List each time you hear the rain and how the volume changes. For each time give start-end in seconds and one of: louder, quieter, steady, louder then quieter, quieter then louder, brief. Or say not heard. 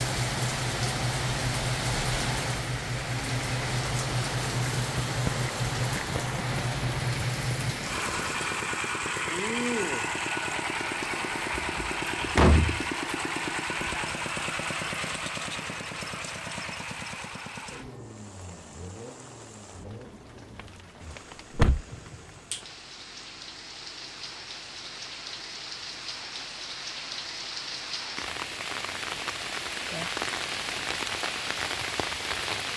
0.0-32.7 quieter then louder.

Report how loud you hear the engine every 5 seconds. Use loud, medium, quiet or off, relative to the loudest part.
loud, loud, loud, medium, quiet, quiet, off.